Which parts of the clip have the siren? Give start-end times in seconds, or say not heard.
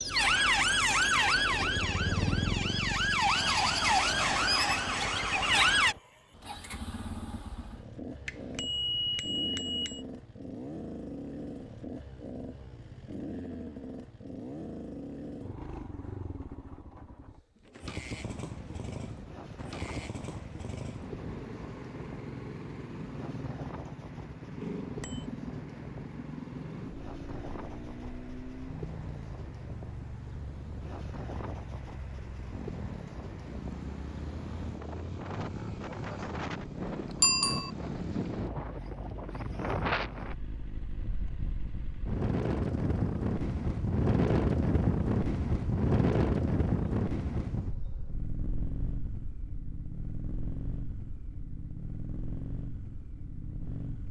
0.0-6.0.